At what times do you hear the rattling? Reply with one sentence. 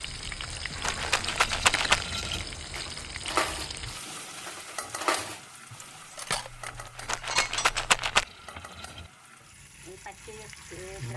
You can hear the rattling from 0.2 to 2.0 s and from 6.5 to 8.2 s.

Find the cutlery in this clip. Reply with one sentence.
The cutlery can be heard from 1.6 to 8.0 s.